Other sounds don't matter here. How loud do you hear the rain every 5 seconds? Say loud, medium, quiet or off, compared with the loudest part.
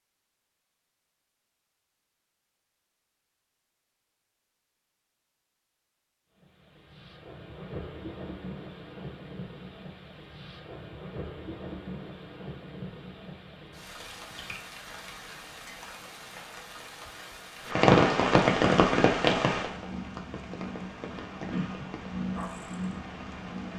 off, quiet, quiet, loud, quiet.